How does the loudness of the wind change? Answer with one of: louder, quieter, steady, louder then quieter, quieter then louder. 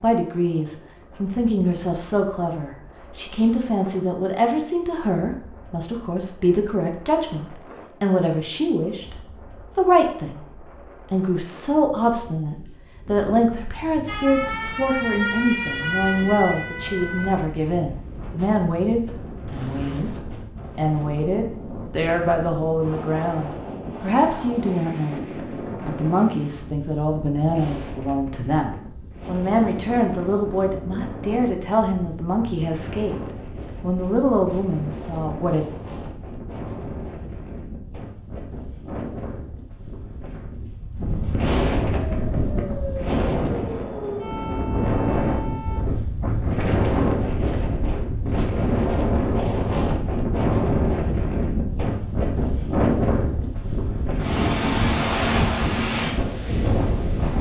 louder.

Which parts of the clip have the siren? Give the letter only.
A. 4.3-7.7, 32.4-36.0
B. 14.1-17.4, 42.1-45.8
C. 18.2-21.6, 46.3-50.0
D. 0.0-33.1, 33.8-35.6
B.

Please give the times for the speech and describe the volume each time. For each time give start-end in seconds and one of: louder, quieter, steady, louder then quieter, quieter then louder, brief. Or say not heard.
0.0-33.1 steady
33.8-35.6 brief.